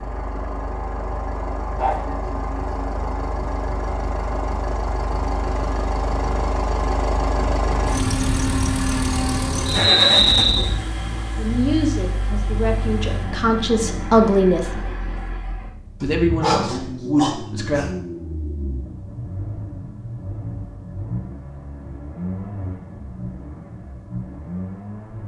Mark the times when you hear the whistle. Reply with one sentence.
The whistle can be heard from 9.7 to 10.7 s.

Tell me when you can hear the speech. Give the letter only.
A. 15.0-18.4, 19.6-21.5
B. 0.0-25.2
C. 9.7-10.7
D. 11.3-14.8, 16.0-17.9
D.